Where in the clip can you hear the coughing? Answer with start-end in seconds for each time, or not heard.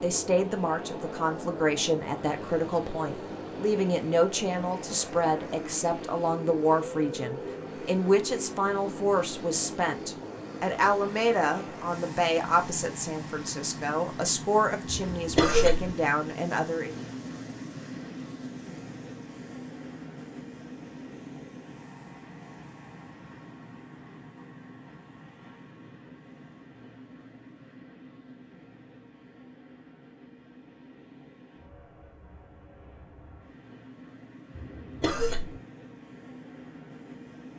14.8-15.9, 34.5-35.6.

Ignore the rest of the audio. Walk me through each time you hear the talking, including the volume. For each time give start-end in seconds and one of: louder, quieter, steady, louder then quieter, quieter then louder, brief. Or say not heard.
0.0-16.9 steady.